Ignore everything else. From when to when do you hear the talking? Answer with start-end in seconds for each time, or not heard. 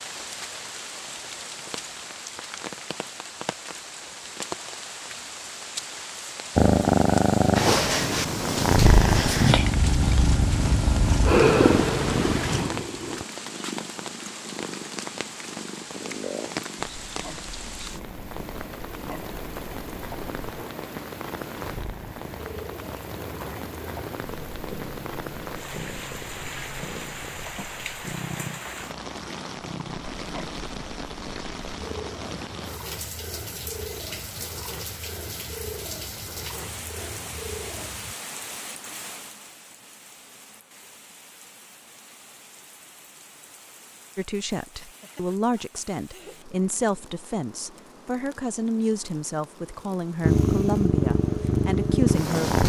44.1-52.6.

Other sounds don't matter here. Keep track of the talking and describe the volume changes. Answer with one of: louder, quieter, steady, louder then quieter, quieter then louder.
steady.